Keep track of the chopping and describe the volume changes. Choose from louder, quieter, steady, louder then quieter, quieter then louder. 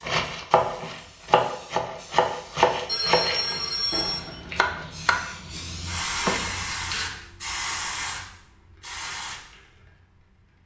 quieter.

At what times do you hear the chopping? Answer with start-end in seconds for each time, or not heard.
0.0-6.5.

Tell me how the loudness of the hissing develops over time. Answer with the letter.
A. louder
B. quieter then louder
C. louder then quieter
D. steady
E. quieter
C.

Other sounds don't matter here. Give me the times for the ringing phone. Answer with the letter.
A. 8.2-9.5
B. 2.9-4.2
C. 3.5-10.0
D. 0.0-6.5
B.